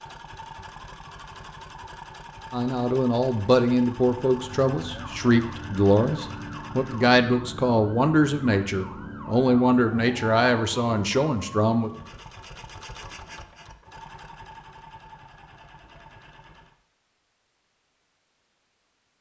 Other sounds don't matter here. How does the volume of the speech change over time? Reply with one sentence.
The loudness of the speech stays about the same.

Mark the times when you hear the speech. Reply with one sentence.
You can hear the speech from 2.5 to 11.9 s.